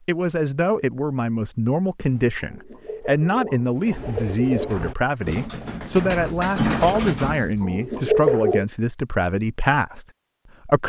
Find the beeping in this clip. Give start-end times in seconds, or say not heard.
not heard.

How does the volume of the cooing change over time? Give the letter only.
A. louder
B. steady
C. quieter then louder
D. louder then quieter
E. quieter
A.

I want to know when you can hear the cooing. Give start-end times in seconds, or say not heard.
2.0-8.7.